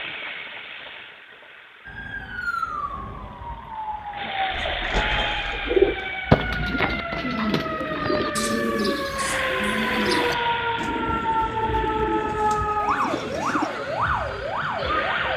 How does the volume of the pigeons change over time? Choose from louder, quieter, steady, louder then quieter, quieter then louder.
quieter.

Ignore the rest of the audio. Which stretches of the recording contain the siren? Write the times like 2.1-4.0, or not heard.
1.9-15.3.